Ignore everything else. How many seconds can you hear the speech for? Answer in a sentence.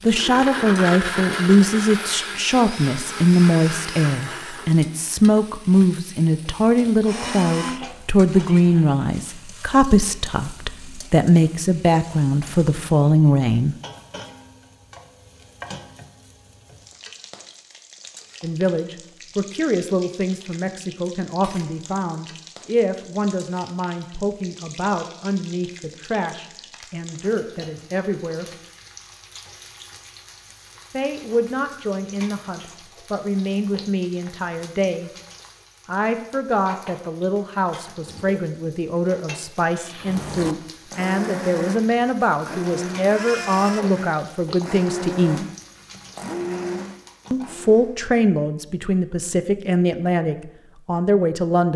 The speech can be heard for 42 seconds in total.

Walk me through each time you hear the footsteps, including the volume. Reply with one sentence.
The footsteps can't be heard in this clip.